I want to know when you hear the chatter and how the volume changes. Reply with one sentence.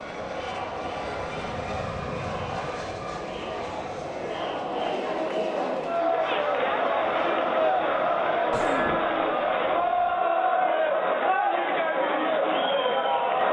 The chatter can be heard from 0.0 to 13.4 s, getting louder.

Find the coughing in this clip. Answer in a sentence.
The coughing can be heard from 8.5 to 9.2 s.